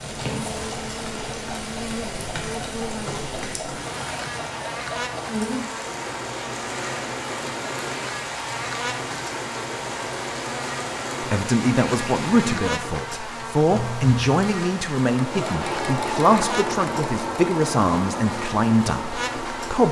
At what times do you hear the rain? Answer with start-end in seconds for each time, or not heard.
0.0-12.5.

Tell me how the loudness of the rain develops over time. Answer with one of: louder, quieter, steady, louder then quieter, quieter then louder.
steady.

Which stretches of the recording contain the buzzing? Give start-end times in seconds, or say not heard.
0.2-19.8.